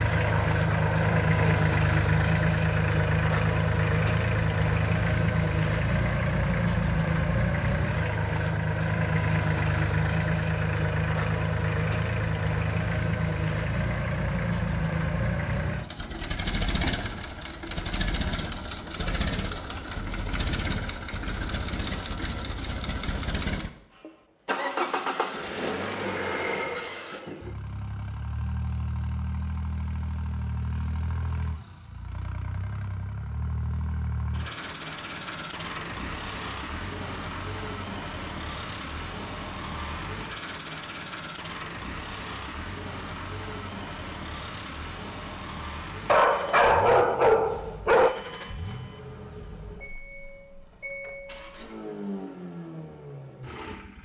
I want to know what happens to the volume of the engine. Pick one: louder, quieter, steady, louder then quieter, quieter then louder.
quieter.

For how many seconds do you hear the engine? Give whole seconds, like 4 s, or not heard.
54 s.